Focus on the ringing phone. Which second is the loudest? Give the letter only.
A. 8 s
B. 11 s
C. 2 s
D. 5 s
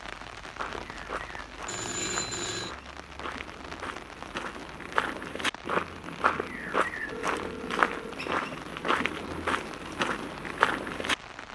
C.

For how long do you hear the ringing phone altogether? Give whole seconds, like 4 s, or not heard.
2 s.